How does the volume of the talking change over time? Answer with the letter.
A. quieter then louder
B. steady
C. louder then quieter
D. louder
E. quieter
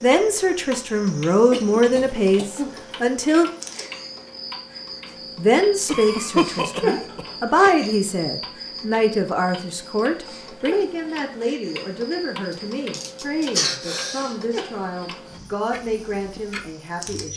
E.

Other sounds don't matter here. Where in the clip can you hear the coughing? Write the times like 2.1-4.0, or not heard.
1.5-3.5, 5.8-7.7, 12.9-14.3.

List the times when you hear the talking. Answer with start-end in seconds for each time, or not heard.
0.0-3.5, 5.3-17.3.